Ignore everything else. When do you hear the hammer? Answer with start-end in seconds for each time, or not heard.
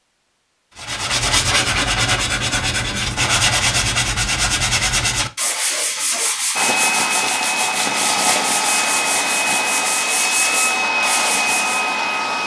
not heard.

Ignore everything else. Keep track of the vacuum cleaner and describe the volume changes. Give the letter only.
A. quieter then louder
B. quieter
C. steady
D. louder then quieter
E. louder
C.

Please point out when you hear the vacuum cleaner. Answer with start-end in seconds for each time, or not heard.
6.5-12.4.